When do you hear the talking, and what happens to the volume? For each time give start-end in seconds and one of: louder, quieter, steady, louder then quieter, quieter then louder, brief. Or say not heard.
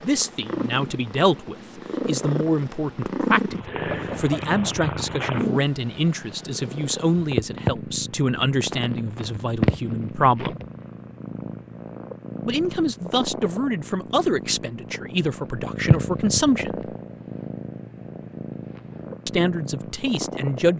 0.0-10.6 steady
12.4-16.8 steady
19.2-20.7 brief.